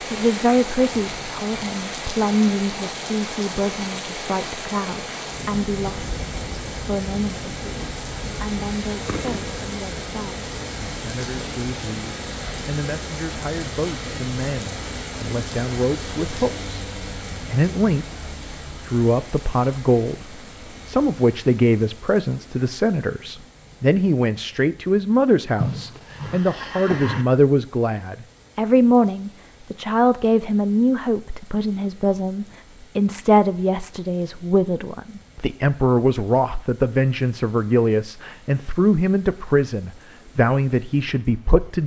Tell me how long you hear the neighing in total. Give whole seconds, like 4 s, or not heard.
2 s.